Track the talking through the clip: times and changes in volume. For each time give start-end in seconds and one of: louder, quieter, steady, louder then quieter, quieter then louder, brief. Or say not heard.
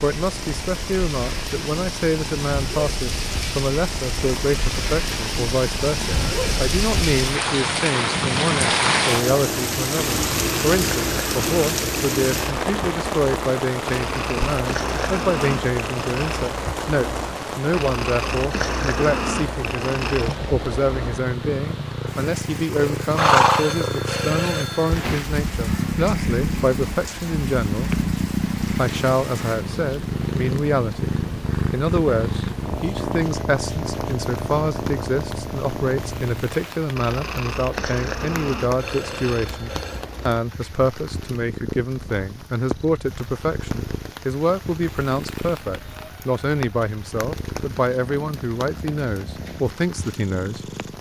0.0-27.9 steady
28.8-50.9 steady.